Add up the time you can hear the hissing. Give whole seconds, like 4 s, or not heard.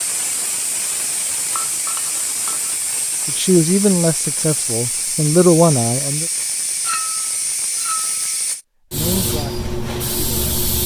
11 s.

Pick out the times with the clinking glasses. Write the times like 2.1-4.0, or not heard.
1.6-2.8, 6.8-8.2.